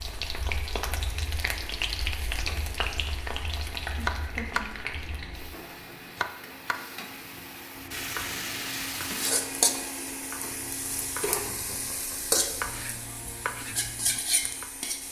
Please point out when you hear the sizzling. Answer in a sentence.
The sizzling can be heard from 0.0 to 15.0 s.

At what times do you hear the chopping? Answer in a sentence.
You can hear the chopping from 3.7 to 14.7 s.